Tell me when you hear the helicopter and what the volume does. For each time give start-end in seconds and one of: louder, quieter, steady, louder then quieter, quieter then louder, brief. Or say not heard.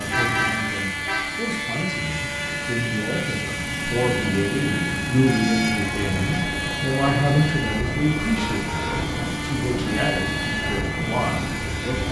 0.0-12.0 steady.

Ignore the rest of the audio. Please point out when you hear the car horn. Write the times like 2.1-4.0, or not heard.
0.1-1.4, 5.2-6.5, 8.3-8.9.